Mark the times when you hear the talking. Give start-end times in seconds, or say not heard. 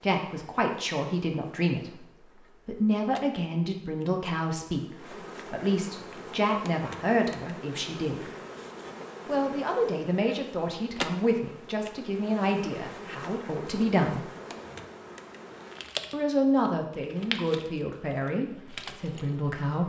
0.0-8.3, 9.2-14.2, 16.1-19.8.